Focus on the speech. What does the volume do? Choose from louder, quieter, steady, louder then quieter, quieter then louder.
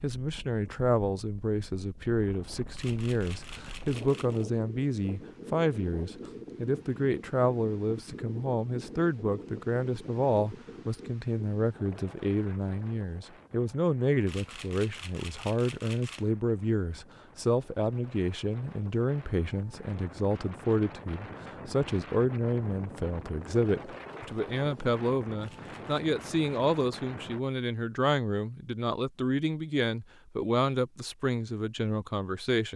steady.